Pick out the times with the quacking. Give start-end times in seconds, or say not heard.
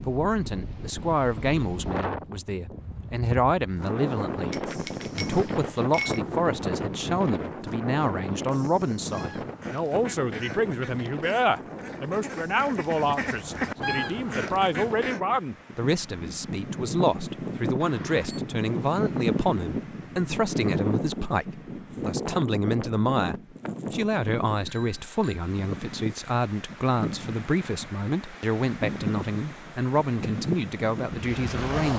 9.1-15.2.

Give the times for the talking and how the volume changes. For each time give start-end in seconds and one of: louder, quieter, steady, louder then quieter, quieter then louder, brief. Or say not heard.
0.1-31.9 steady.